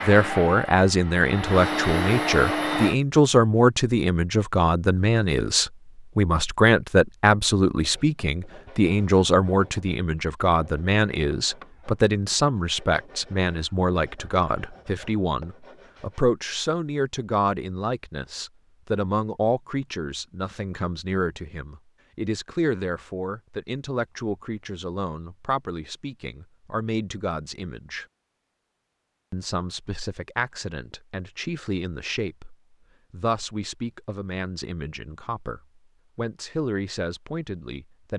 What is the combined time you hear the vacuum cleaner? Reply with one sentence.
You can hear the vacuum cleaner for 3 seconds altogether.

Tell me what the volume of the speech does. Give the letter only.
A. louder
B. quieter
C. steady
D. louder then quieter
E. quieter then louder
B.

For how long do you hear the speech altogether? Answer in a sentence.
The speech can be heard for 37 seconds in total.